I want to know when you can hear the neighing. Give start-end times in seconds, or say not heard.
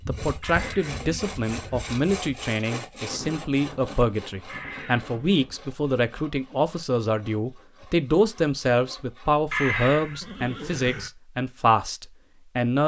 0.4-2.0, 4.5-5.3, 9.5-11.1.